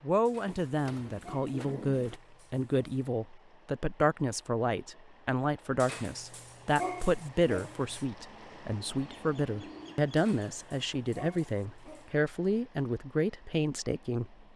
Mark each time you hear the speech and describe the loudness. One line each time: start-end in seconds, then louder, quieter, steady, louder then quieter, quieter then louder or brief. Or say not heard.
0.0-14.3 steady.